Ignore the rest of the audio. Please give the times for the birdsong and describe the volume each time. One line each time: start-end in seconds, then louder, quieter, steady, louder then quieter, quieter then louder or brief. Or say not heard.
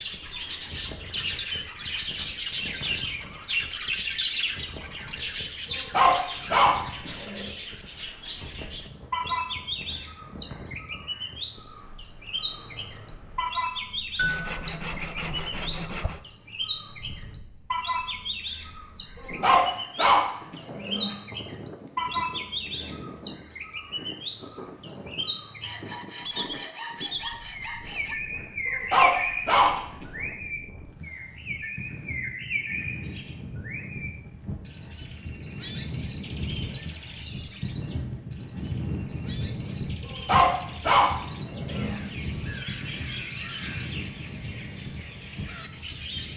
0.0-46.3 quieter.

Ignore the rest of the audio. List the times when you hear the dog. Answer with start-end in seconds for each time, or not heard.
5.9-7.5, 19.4-21.1, 28.9-30.1, 40.2-42.0.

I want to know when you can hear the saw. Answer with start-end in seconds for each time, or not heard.
14.2-16.2, 25.6-28.1.